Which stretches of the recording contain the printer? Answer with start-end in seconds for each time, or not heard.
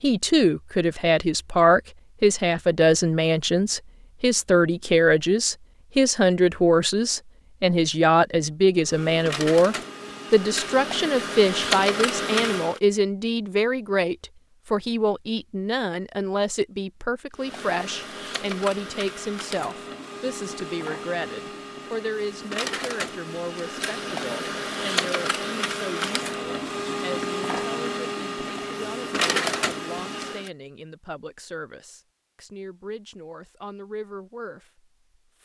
8.8-12.8, 17.4-30.5.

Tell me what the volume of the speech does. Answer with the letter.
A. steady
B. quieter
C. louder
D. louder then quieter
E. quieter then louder
B.